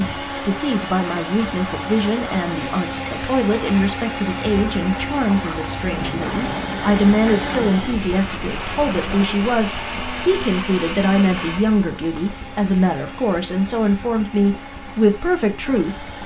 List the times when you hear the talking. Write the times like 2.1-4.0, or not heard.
0.0-16.1.